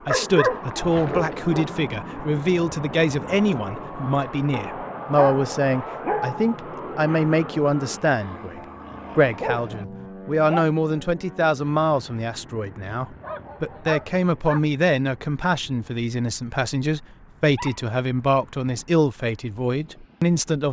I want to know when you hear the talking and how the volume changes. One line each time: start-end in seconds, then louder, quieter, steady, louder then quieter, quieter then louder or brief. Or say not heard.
0.1-20.6 steady.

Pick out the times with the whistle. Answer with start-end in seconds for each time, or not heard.
not heard.